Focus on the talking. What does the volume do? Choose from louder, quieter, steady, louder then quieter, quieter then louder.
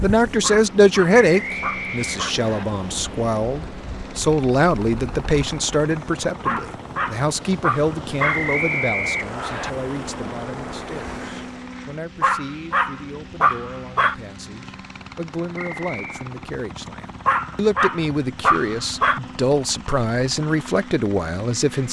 quieter then louder.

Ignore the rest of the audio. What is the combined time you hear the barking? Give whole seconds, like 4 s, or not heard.
8 s.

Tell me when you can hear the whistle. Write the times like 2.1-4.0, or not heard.
1.4-2.6, 8.2-9.7, 15.6-16.3.